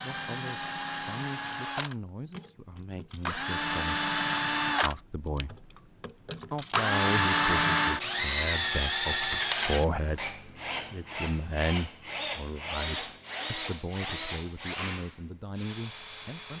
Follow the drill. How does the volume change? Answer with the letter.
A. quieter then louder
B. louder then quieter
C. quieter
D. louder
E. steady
B.